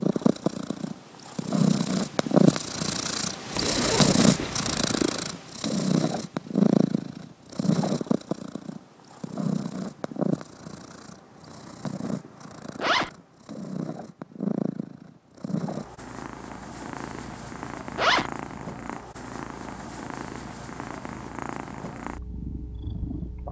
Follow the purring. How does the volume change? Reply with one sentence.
The loudness of the purring goes down.